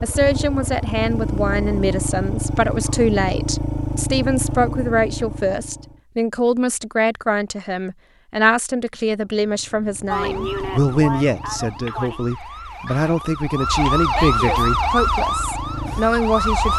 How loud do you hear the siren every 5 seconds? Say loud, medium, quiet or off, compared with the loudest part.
off, off, loud, loud.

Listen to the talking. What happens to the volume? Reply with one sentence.
The loudness of the talking stays about the same.